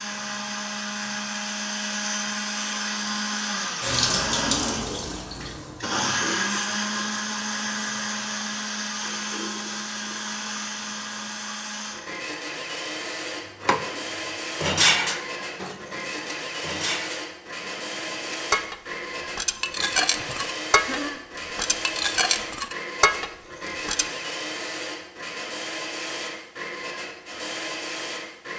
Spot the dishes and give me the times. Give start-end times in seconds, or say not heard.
13.6-14.0, 14.6-24.1.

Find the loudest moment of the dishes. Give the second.
15 s.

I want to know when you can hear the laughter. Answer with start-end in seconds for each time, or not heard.
20.1-21.2.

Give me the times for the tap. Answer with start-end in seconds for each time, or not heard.
3.8-11.8.